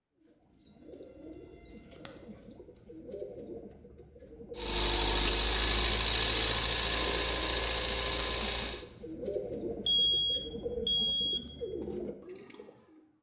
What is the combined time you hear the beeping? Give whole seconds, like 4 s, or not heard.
2 s.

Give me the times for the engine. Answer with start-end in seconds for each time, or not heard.
4.5-8.8.